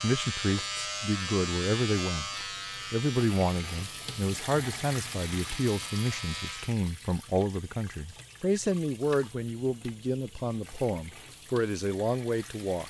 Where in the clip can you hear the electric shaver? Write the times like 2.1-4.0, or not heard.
0.0-6.8.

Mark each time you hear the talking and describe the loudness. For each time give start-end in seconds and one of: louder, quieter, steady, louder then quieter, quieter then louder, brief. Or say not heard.
0.0-2.3 brief
2.9-12.8 steady.